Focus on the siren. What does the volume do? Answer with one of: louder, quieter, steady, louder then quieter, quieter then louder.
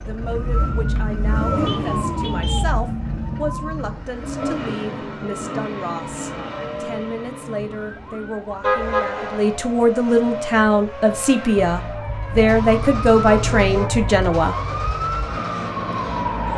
quieter then louder.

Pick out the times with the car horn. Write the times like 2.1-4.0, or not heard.
1.6-2.6, 8.6-9.4, 12.3-14.3.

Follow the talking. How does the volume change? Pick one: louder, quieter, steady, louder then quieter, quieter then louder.
louder.